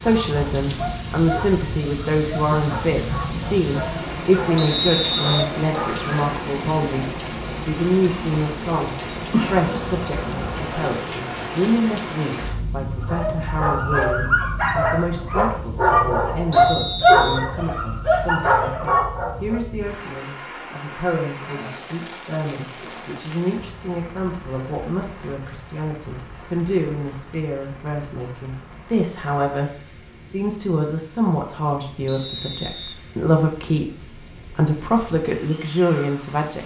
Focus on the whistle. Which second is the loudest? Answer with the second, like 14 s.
5 s.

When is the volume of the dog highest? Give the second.
17 s.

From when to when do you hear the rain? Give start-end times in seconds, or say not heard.
0.0-36.6.